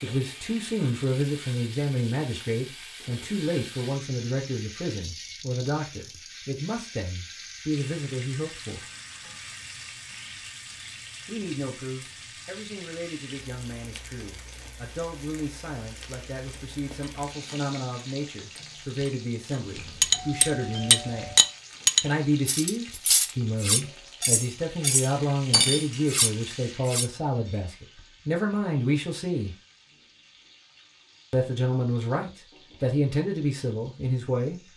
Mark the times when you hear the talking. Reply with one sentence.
You can hear the talking from 0.0 to 8.8 s, from 11.2 to 21.4 s, from 22.0 to 29.5 s and from 31.3 to 34.6 s.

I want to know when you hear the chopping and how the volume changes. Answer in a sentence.
The chopping can't be heard in this clip.